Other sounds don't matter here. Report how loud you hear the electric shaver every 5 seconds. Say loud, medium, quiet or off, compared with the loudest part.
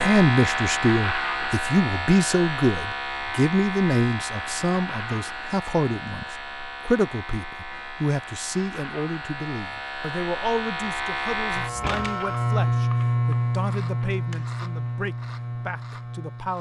loud, medium, loud, medium.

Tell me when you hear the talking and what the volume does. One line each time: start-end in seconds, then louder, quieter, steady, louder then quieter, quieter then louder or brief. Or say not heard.
0.0-16.5 quieter.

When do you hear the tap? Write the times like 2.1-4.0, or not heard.
not heard.